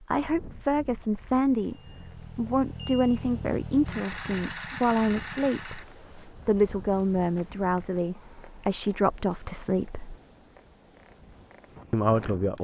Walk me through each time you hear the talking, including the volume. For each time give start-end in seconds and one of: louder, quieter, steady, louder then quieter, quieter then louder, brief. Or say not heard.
0.0-10.2 steady
11.9-12.5 brief.